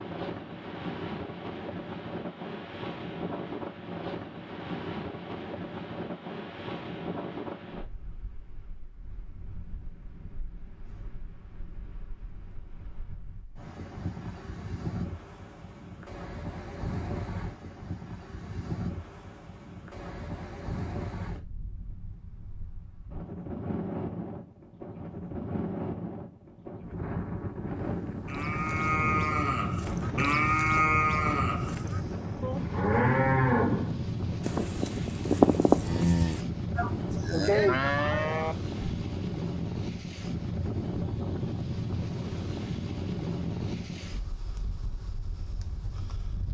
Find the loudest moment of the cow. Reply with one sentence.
The volume of the cow peaks at 36 seconds.